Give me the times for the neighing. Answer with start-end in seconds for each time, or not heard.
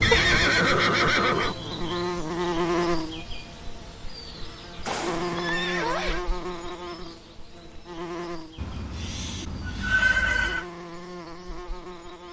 0.0-1.6, 4.8-6.2, 8.6-10.7.